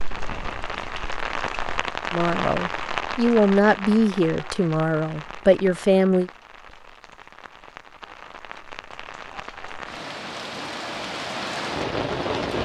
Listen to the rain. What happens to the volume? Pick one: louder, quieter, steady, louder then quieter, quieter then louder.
quieter then louder.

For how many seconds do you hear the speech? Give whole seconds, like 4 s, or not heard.
4 s.